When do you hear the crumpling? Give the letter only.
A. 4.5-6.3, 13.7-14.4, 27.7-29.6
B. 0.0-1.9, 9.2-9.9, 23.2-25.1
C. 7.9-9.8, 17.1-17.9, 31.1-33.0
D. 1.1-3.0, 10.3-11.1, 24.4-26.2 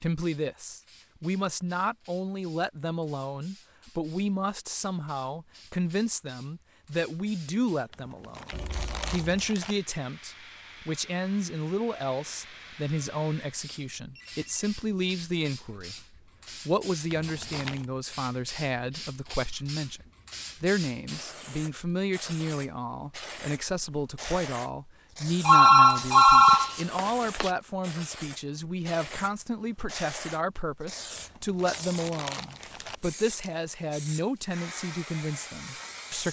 C.